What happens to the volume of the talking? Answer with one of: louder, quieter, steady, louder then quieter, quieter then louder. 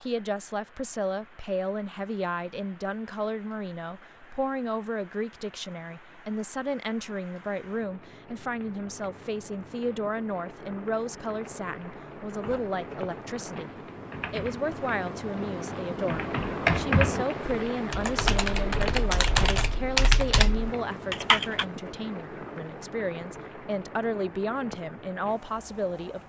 steady.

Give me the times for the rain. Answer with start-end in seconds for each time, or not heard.
0.0-26.2.